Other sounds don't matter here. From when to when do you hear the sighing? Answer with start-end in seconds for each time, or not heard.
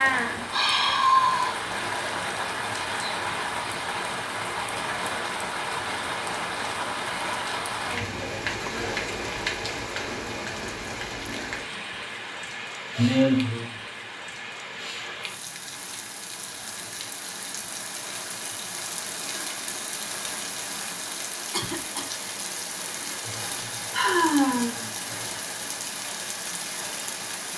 0.1-1.6, 12.9-13.7, 23.2-25.1.